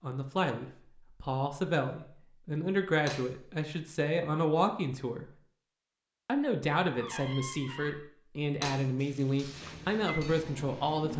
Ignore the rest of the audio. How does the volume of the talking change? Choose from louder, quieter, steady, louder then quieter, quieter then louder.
steady.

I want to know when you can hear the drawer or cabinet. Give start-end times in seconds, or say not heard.
6.9-8.0.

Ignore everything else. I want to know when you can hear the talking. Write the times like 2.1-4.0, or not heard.
0.0-5.3, 6.2-11.1.